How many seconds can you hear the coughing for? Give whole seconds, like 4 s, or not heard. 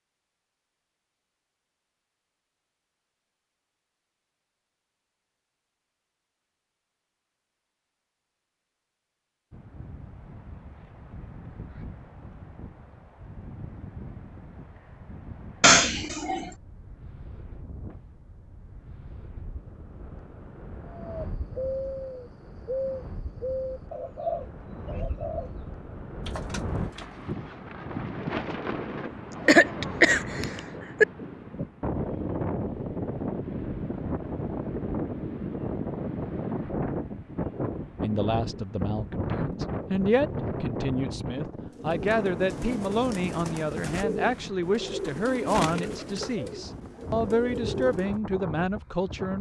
3 s.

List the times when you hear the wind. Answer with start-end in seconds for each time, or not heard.
9.5-49.3.